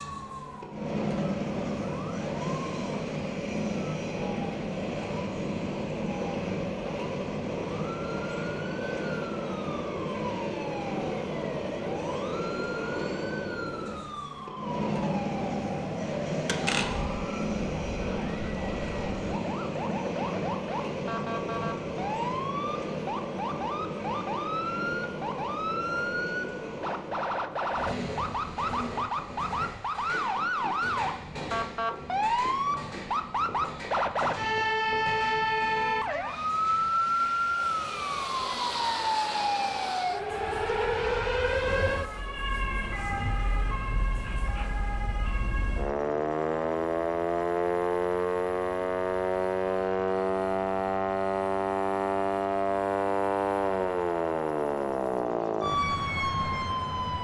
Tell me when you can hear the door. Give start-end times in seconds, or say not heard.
16.4-17.1.